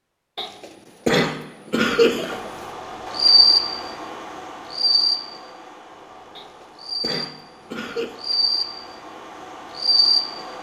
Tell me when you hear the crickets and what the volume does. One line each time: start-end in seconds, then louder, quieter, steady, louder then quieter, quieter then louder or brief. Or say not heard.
2.3-10.5 quieter then louder.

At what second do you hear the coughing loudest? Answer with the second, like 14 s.
2 s.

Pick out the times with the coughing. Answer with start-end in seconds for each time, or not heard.
0.3-2.5, 6.3-8.2.